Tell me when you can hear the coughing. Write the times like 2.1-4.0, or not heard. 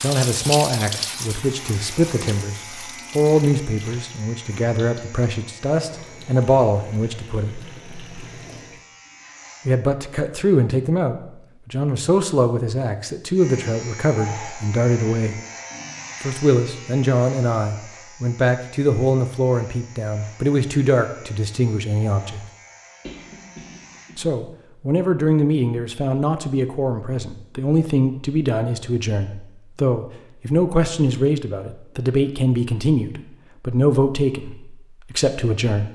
23.0-24.2.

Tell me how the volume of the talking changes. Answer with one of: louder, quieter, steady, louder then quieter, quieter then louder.
steady.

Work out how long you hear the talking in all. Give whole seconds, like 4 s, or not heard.
31 s.